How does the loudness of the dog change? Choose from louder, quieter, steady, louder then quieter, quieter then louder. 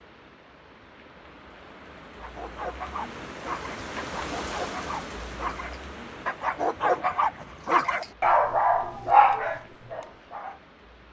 louder.